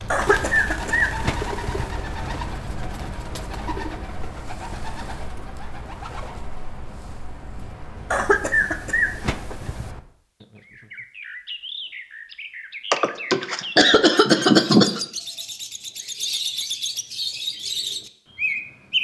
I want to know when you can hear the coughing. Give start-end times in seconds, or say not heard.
0.1-1.9, 8.1-9.8, 12.9-15.0.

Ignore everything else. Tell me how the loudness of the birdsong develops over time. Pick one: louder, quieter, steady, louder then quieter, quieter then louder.
quieter then louder.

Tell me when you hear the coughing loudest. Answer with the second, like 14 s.
15 s.